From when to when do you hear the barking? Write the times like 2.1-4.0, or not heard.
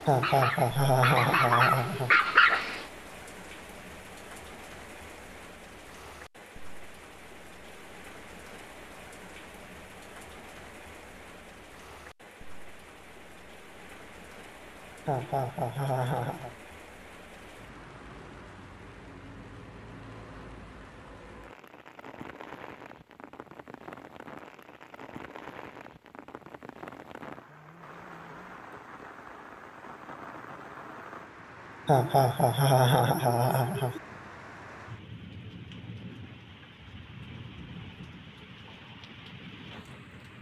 0.0-2.9.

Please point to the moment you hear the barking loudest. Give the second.
2 s.